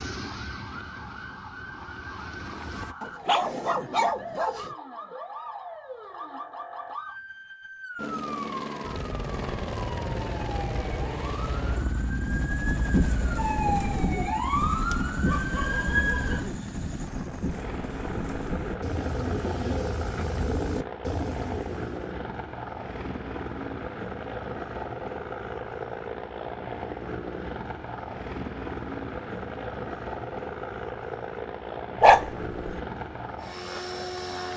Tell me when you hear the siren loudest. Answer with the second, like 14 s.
14 s.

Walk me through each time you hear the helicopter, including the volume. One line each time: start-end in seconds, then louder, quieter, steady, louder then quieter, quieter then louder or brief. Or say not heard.
0.0-3.0 brief
8.0-34.5 steady.